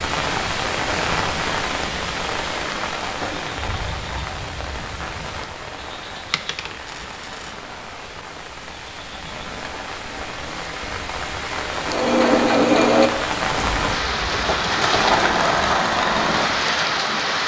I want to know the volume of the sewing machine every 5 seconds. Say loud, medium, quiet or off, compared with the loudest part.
off, off, loud, loud.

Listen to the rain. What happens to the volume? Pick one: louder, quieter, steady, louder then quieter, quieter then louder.
quieter then louder.